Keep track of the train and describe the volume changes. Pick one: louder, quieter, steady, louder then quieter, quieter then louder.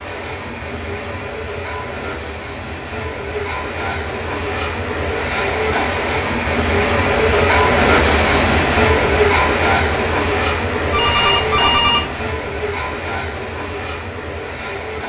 louder then quieter.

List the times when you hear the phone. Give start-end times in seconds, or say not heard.
10.9-12.1.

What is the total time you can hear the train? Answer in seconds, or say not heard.
15 s.